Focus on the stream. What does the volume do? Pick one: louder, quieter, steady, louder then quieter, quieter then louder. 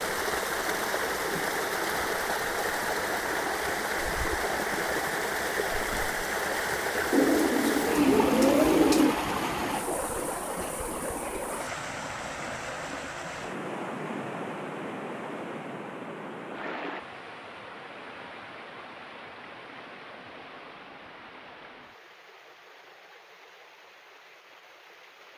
quieter.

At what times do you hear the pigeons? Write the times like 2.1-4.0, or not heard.
7.1-9.2.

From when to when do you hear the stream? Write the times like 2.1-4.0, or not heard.
0.0-25.3.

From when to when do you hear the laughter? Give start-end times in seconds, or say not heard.
not heard.